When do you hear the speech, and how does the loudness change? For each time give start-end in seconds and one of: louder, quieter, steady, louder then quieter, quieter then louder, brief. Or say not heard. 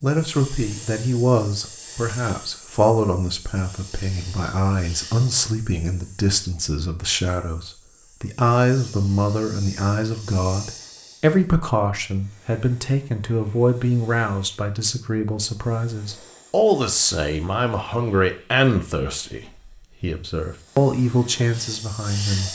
0.0-22.5 steady.